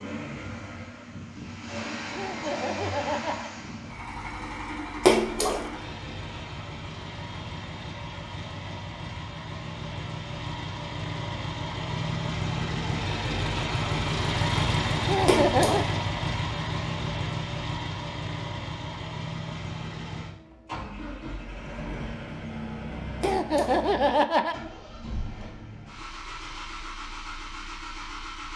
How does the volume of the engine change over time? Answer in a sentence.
The volume of the engine goes up, then down.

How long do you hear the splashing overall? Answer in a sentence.
The splashing can be heard for 2 seconds in total.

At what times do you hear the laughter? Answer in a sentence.
You can hear the laughter from 2.1 to 3.5 s, from 15.1 to 15.8 s and from 23.2 to 24.6 s.